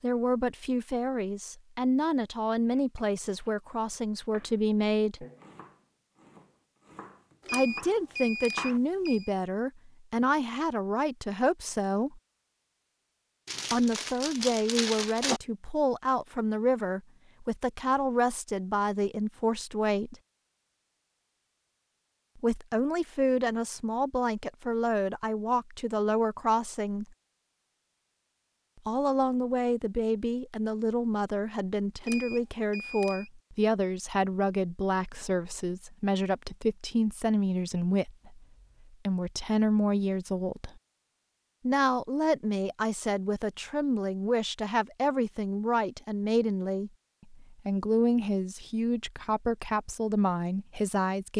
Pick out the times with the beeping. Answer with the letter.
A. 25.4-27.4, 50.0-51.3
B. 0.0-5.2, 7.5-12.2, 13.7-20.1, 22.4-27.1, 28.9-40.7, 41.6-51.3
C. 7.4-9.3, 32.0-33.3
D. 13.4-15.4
C.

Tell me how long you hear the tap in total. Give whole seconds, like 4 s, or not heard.
not heard.